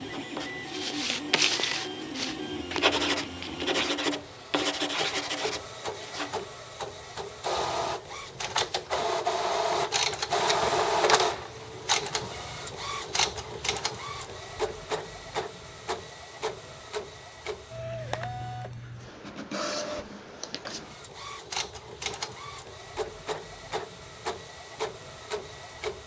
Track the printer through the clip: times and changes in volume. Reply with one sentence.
The printer can be heard from 0.0 to 26.0 s, getting louder then quieter.